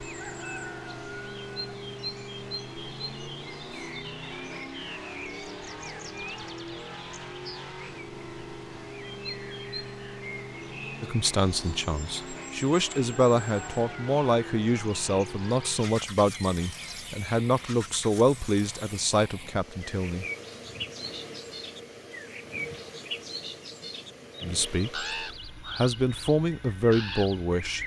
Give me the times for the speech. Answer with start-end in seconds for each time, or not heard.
11.0-20.2, 24.4-27.8.